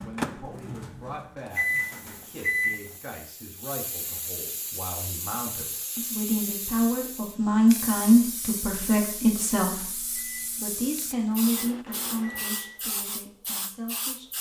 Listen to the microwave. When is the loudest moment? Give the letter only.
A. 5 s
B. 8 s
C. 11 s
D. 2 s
D.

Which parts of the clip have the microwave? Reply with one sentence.
The microwave can be heard from 0.0 to 2.9 s and from 10.2 to 12.8 s.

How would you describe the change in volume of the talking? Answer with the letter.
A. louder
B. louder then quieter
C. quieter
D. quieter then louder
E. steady
B.